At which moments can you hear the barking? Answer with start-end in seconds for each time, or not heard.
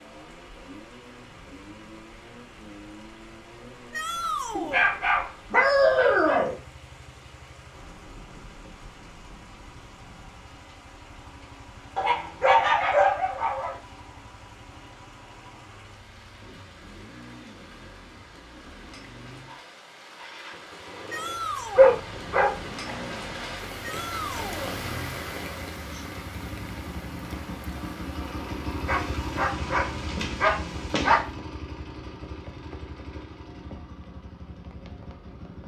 4.5-6.5, 11.9-13.8, 21.8-23.4, 28.9-31.2.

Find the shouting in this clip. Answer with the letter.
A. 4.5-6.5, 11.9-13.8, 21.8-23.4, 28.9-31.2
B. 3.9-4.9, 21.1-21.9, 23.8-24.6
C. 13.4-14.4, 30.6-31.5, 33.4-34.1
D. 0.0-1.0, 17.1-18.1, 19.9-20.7
B.